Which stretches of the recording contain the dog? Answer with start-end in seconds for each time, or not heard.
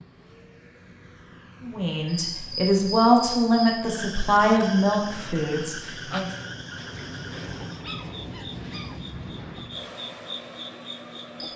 7.7-9.2.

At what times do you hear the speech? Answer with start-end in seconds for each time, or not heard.
1.6-6.3.